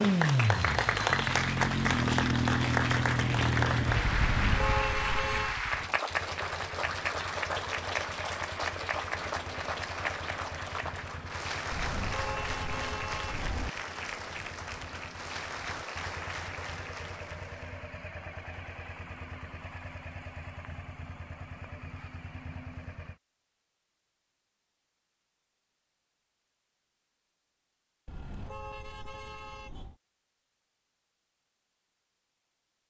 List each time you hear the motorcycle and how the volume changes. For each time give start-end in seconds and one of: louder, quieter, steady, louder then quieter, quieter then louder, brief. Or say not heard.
0.0-23.2 quieter.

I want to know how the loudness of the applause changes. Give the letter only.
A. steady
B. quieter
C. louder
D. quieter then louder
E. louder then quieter
B.